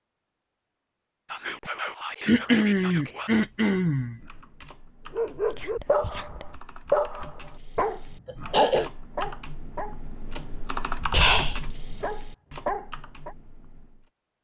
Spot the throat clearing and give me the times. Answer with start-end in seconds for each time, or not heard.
2.2-4.2, 8.2-8.9.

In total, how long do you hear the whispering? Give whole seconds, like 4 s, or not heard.
4 s.